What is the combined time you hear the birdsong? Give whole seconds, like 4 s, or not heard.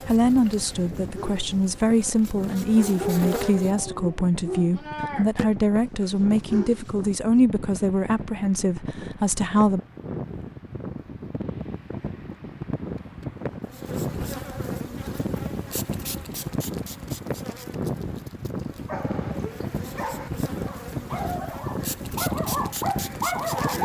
not heard.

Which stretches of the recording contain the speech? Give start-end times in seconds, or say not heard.
0.1-9.8.